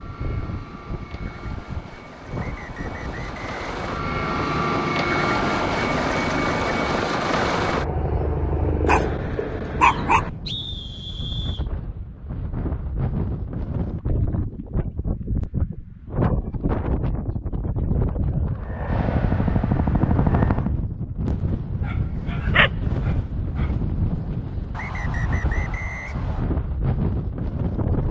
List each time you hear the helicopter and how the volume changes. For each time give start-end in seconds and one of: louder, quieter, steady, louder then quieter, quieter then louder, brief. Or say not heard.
0.0-9.2 louder
18.6-20.8 brief.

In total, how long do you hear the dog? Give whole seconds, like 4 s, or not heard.
3 s.